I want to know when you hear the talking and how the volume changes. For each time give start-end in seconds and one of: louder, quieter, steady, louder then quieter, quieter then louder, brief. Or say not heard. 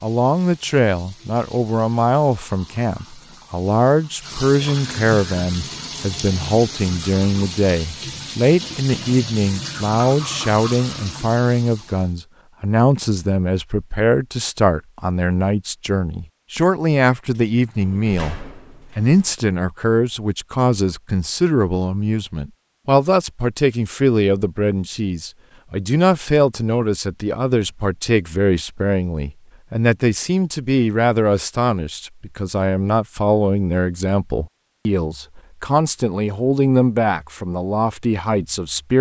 0.0-38.9 steady.